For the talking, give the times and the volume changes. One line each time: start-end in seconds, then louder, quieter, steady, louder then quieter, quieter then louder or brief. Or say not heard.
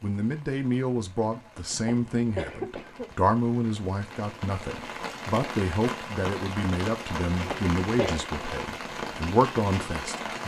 0.0-10.2 steady.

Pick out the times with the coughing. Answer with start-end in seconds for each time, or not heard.
1.9-3.1, 7.5-8.2.